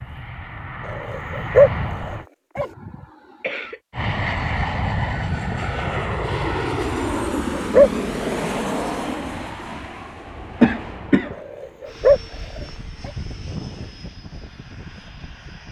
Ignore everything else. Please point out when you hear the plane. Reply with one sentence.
You can hear the plane from 0.0 to 2.2 s and from 3.9 to 15.6 s.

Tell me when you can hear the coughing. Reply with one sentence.
The coughing can be heard from 2.5 to 3.8 s and from 10.6 to 11.3 s.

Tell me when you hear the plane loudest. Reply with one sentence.
The loudest moment of the plane is at 7 seconds.